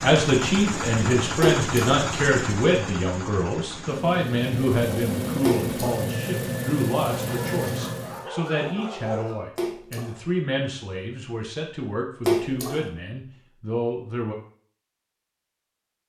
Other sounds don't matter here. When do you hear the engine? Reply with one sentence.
The engine can be heard from 0.0 to 8.3 s.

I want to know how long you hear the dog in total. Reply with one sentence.
The dog can be heard for 2 seconds in total.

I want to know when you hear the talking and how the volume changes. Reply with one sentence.
You can hear the talking from 0.0 to 14.3 s, getting quieter.